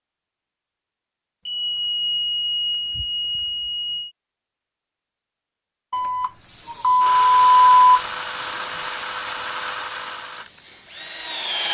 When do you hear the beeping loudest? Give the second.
8 s.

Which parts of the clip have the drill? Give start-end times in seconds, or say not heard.
7.0-11.6.